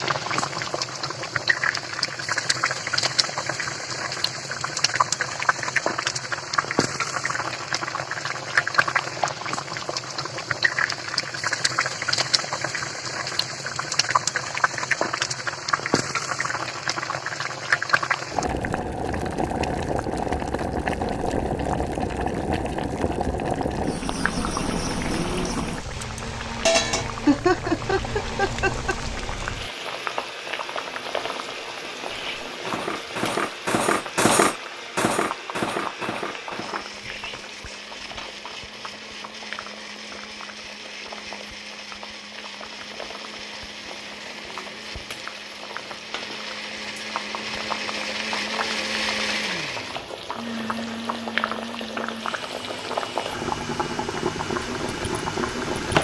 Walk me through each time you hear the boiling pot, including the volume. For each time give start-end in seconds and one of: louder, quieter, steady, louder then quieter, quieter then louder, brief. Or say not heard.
0.0-55.9 quieter then louder.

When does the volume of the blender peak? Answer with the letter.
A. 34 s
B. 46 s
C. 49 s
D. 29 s
C.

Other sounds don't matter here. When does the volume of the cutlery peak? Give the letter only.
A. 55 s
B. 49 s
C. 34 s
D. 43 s
C.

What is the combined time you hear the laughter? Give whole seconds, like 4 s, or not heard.
2 s.